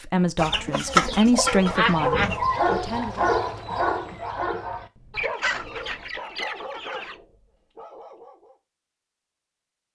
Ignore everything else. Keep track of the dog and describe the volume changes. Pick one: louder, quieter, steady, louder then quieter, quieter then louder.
quieter.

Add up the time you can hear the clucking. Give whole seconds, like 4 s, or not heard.
4 s.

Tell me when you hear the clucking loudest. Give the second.
1 s.